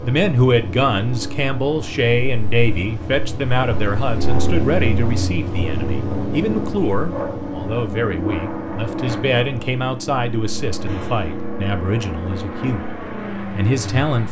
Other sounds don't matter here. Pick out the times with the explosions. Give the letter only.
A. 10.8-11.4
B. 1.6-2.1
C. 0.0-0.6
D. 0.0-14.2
A.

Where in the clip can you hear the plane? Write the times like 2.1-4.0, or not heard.
0.0-14.2.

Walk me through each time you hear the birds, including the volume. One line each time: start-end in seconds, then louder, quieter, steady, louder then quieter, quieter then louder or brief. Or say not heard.
not heard.